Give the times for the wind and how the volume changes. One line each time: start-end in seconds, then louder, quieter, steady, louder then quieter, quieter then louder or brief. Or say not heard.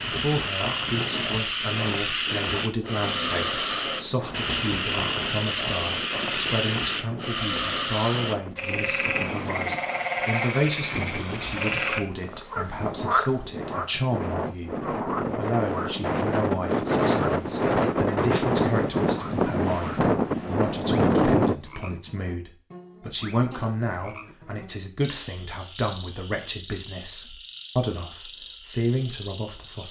0.0-21.6 louder.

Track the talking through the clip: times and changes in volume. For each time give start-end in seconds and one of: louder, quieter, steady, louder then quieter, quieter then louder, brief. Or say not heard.
0.1-29.8 steady.